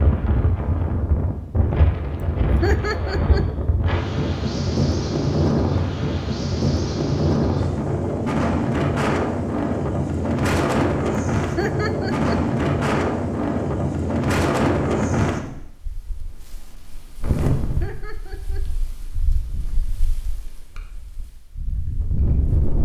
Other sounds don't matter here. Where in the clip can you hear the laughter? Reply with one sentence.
The laughter can be heard from 2.6 to 3.5 s, from 11.6 to 12.4 s and from 17.8 to 18.6 s.